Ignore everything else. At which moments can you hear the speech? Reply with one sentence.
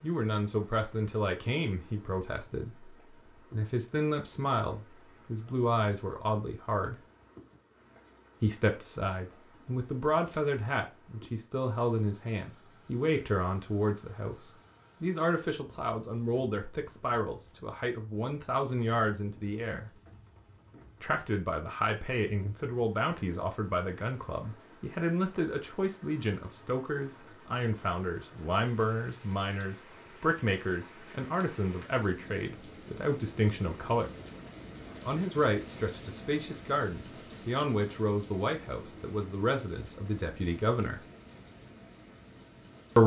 The speech can be heard from 0.0 to 7.0 s, from 8.4 to 19.9 s, from 21.0 to 34.1 s and from 35.0 to 41.0 s.